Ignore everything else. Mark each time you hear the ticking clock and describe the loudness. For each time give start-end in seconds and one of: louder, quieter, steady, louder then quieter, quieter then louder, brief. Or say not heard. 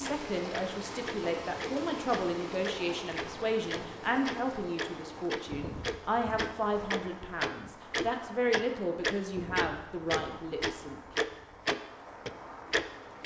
0.0-13.2 louder.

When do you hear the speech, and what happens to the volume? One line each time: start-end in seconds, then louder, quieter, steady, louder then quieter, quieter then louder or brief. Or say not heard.
0.0-11.2 steady.